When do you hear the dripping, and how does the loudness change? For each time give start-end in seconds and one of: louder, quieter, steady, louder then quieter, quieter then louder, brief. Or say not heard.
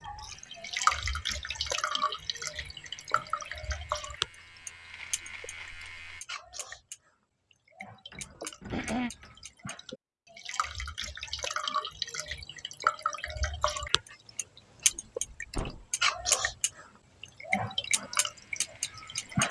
0.0-19.4 quieter then louder.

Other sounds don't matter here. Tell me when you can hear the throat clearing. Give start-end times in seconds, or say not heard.
8.3-9.1.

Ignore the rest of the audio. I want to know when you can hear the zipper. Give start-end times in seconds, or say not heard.
not heard.